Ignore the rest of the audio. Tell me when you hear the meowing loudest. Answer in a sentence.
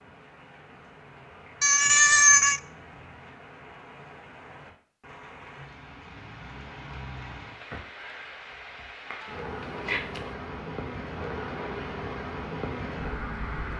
The loudest moment of the meowing is at 2 seconds.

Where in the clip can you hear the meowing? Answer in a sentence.
You can hear the meowing from 1.6 to 2.6 s and from 9.4 to 10.3 s.